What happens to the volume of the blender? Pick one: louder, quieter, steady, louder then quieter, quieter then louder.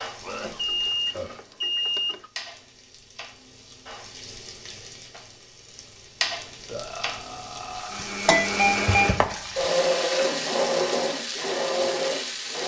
steady.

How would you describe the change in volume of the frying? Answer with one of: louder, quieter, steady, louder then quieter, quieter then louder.
louder.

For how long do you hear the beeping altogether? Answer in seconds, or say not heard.
3 s.